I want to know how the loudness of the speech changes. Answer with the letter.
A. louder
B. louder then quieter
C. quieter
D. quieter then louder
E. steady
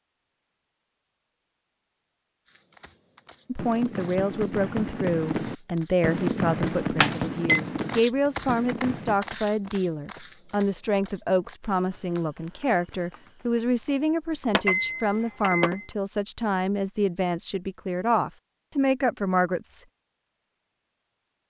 E.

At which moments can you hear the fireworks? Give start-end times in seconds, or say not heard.
3.5-9.2.